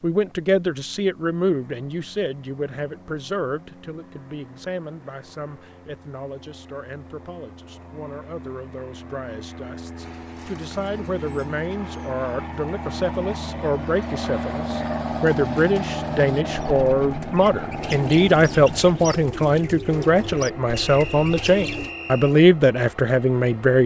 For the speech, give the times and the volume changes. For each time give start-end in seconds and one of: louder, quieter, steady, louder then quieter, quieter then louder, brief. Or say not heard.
0.0-23.8 quieter then louder.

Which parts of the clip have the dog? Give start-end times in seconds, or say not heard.
not heard.